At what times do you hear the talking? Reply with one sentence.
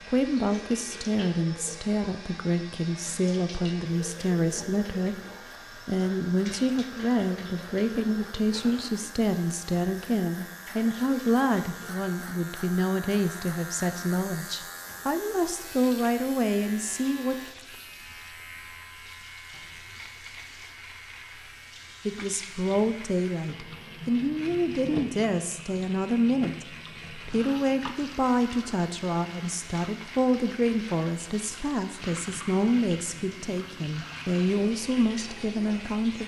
You can hear the talking from 0.1 to 5.2 s, from 5.8 to 17.4 s and from 22.1 to 36.2 s.